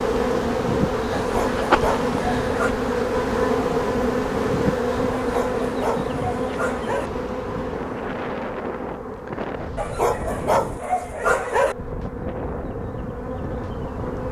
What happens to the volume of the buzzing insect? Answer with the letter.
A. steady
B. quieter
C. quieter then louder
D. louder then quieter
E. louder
B.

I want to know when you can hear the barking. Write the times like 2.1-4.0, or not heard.
1.1-2.8, 5.2-7.1, 9.8-11.8.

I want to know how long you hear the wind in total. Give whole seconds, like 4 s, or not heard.
14 s.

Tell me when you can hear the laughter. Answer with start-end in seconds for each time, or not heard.
not heard.